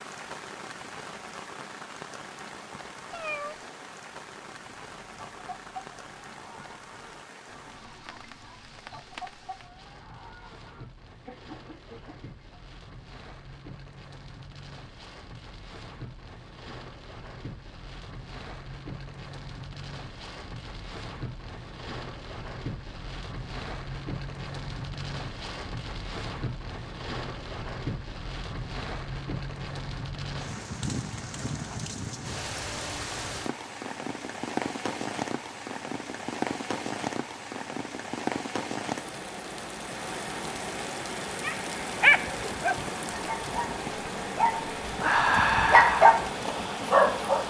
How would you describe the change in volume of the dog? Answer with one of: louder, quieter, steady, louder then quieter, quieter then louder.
quieter then louder.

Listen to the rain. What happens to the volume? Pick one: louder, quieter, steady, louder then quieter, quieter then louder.
louder.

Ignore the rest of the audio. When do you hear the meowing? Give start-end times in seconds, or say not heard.
3.1-3.6.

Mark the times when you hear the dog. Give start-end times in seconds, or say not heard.
41.4-47.4.